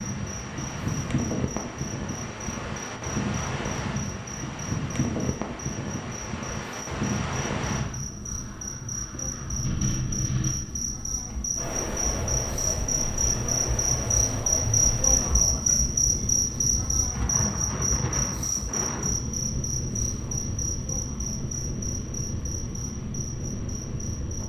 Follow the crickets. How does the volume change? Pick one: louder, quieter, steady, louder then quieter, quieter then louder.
louder then quieter.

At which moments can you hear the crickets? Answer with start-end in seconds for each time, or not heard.
0.0-24.4.